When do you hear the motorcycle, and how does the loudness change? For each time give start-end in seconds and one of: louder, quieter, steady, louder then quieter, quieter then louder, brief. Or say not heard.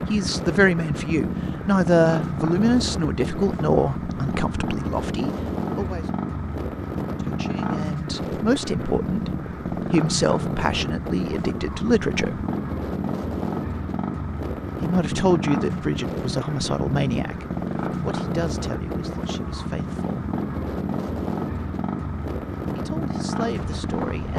0.0-24.3 steady.